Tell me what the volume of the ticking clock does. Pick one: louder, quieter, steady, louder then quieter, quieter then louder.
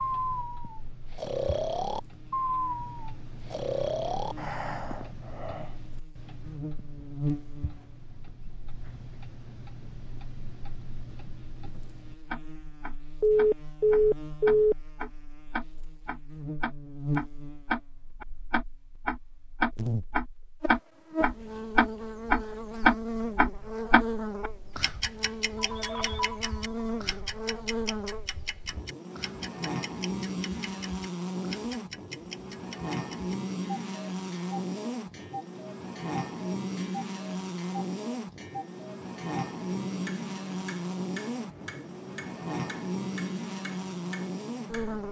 louder then quieter.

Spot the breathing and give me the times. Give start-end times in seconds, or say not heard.
0.0-5.8.